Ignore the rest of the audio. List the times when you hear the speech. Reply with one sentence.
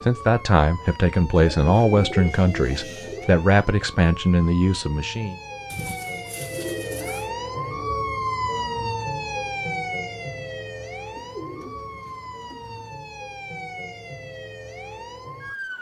You can hear the speech from 0.0 to 5.3 s.